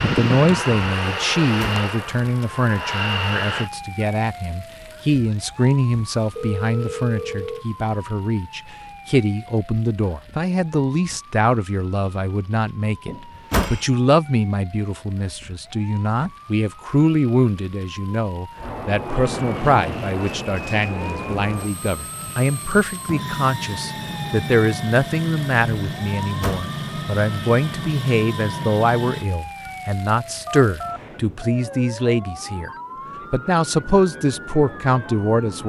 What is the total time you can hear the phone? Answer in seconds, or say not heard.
3 s.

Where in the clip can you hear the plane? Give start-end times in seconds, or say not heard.
0.0-3.7, 18.6-29.3.